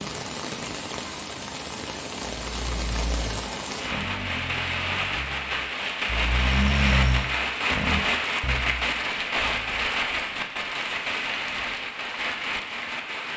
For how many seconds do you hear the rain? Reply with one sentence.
The rain can be heard for 13 seconds in total.